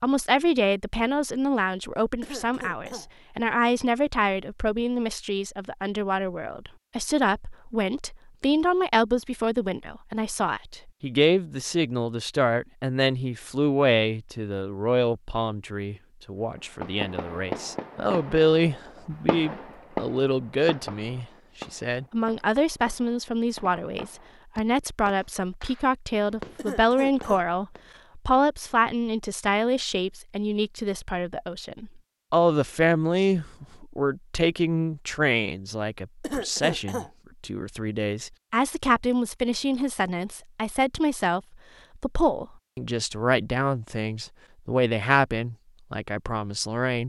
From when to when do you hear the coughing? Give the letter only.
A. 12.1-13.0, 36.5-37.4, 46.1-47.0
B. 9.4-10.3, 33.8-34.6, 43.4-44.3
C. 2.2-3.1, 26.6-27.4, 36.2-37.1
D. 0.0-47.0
C.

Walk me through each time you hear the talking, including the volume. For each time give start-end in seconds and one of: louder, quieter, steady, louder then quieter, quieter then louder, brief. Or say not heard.
0.0-47.0 steady.